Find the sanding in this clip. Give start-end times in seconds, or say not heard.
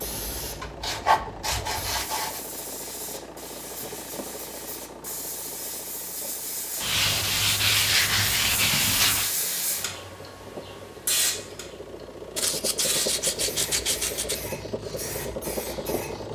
0.6-2.5, 6.8-9.3, 12.3-14.3.